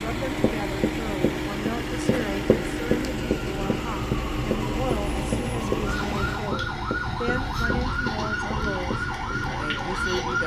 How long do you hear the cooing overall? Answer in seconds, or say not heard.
not heard.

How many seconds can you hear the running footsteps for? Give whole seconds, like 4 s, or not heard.
9 s.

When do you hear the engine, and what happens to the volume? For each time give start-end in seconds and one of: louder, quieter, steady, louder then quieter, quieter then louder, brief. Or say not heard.
0.0-6.5 steady.